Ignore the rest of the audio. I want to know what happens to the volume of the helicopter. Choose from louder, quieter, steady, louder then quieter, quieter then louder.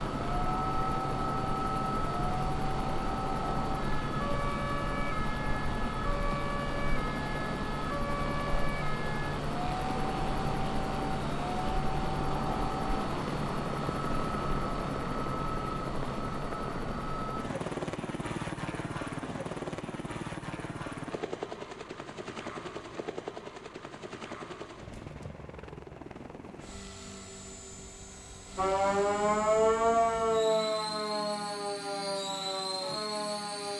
quieter.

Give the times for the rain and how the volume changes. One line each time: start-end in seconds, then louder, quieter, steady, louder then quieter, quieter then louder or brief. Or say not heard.
not heard.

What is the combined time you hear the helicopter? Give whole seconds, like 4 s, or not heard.
34 s.